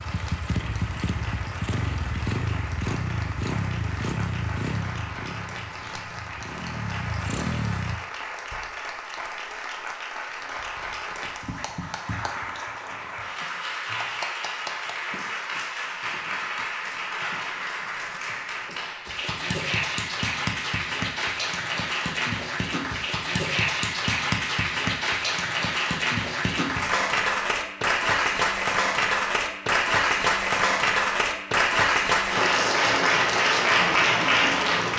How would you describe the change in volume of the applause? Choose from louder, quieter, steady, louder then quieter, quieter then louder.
louder.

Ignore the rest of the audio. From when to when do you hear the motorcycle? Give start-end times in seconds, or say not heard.
0.0-8.0.